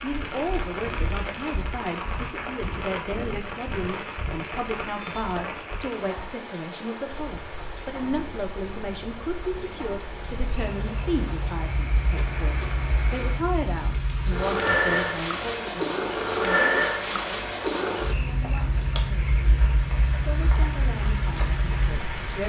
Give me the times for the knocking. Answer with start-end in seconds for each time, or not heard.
12.2-12.8.